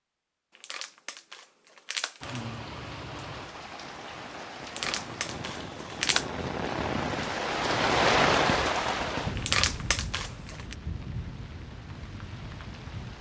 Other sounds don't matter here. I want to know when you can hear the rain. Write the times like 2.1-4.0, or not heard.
2.2-13.1.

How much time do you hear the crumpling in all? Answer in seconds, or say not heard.
5 s.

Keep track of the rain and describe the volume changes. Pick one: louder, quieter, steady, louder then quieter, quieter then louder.
louder then quieter.